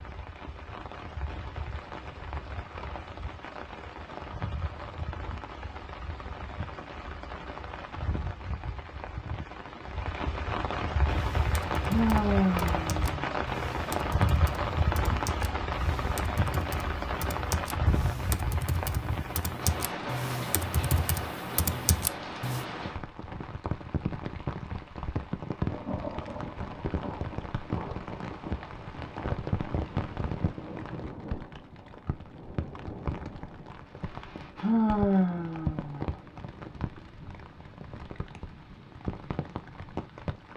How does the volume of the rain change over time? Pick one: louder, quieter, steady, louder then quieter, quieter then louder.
louder then quieter.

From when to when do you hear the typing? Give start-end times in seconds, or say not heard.
11.1-22.6.